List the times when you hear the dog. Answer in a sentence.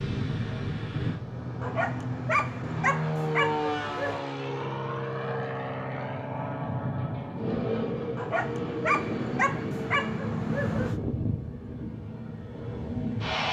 The dog can be heard from 1.6 to 4.2 s and from 8.2 to 10.9 s.